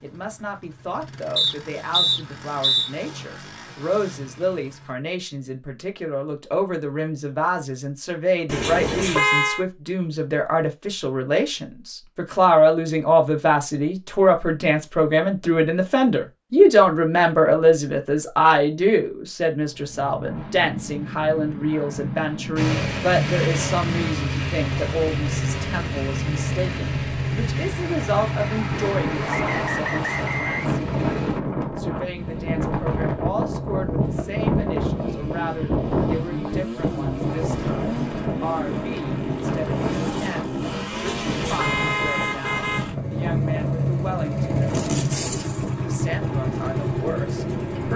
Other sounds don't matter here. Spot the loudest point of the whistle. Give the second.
2 s.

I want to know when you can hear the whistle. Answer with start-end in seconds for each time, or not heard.
1.4-2.9, 29.2-30.8.